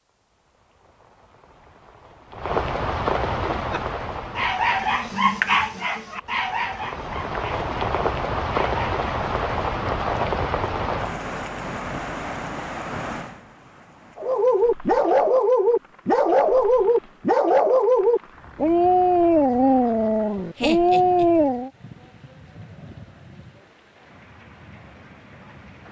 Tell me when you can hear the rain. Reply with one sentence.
The rain can be heard from 0.1 to 25.8 s.